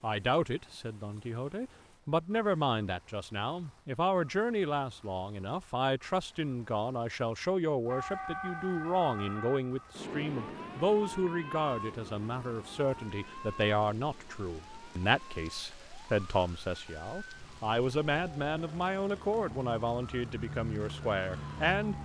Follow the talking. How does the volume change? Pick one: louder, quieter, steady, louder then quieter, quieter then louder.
steady.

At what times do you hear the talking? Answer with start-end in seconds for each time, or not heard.
0.0-21.9.